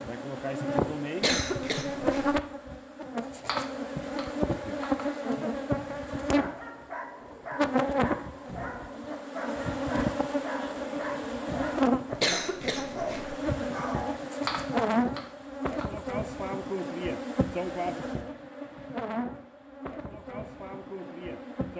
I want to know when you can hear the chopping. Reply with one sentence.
You can hear the chopping from 3.2 to 5.0 s and from 14.2 to 16.0 s.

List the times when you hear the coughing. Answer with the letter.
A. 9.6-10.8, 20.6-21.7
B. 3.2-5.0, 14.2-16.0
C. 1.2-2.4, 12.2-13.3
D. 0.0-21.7
C.